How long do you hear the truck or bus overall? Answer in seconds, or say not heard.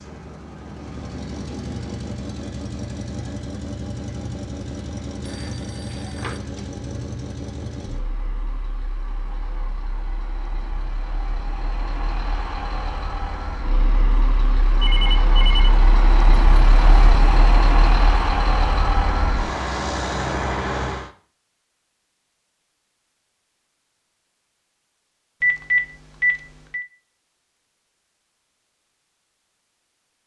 21 s.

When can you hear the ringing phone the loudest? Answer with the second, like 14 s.
26 s.